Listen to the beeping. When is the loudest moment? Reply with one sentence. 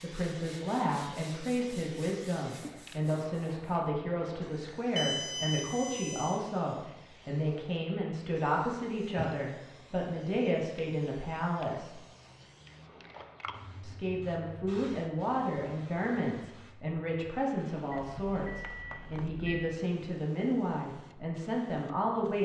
The loudest moment of the beeping is at 5 seconds.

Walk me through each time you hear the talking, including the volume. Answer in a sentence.
The talking can be heard from 0.0 to 11.9 s, at a steady volume; and from 13.8 to 22.3 s, at a steady volume.